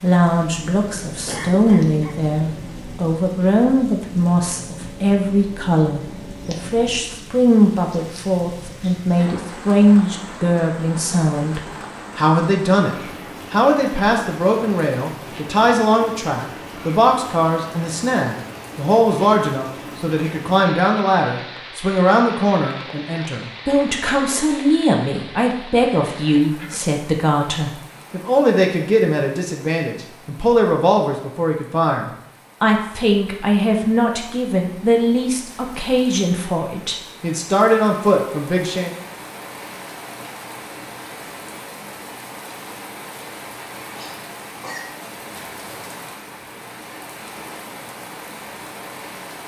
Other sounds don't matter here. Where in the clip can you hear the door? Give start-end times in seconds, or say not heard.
not heard.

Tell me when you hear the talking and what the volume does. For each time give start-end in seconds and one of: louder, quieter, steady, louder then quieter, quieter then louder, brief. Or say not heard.
0.0-38.9 steady.